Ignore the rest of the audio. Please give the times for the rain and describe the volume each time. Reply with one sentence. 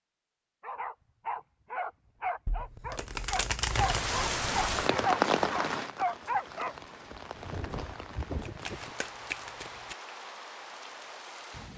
You can hear the rain from 3.6 to 11.7 s, getting quieter.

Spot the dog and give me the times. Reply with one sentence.
The dog can be heard from 0.6 to 8.9 s.